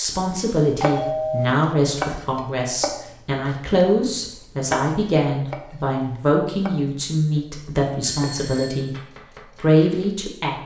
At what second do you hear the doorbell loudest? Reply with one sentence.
The loudest moment of the doorbell is at 1 second.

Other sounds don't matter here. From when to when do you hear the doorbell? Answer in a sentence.
You can hear the doorbell from 0.3 to 1.5 s and from 8.0 to 8.9 s.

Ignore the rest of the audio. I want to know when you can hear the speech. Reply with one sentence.
The speech can be heard from 0.0 to 8.9 s and from 9.5 to 10.6 s.